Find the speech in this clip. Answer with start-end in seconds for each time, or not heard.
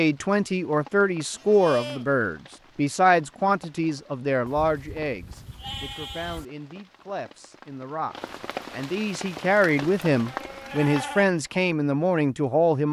0.0-12.8.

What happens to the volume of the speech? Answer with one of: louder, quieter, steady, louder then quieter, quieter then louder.
quieter then louder.